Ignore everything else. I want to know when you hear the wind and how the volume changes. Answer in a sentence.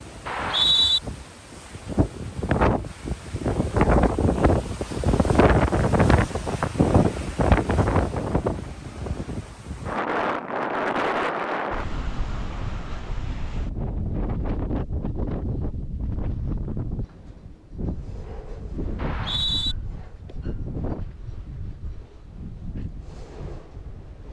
The wind can be heard from 0.0 to 24.2 s, getting quieter.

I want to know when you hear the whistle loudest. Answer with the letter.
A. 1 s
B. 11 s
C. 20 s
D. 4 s
A.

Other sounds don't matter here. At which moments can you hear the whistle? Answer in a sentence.
You can hear the whistle from 0.2 to 1.0 s and from 18.9 to 19.8 s.